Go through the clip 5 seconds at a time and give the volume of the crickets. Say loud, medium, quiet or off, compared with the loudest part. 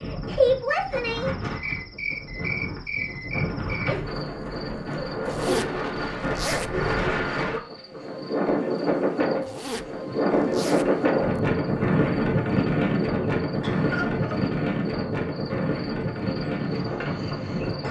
loud, medium, quiet, medium.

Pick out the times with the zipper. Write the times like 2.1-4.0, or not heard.
5.2-6.7, 9.4-11.4.